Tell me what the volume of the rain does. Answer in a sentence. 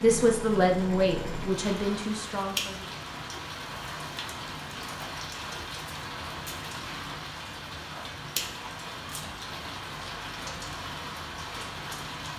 The loudness of the rain stays about the same.